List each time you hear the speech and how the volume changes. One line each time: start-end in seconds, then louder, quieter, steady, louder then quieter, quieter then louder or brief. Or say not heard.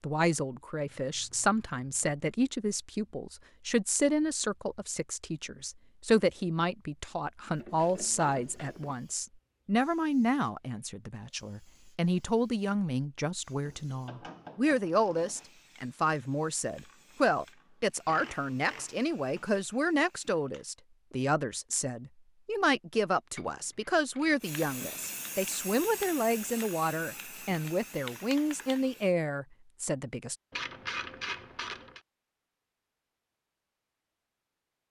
0.0-30.4 steady.